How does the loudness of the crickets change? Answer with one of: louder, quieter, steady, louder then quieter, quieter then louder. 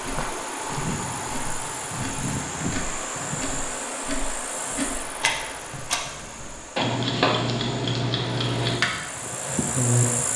quieter then louder.